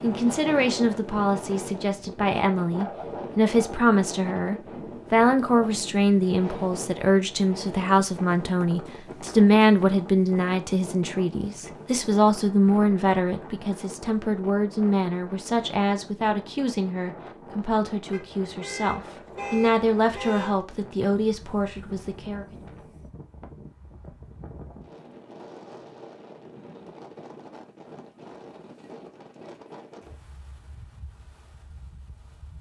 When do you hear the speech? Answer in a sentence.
The speech can be heard from 0.0 to 22.6 s.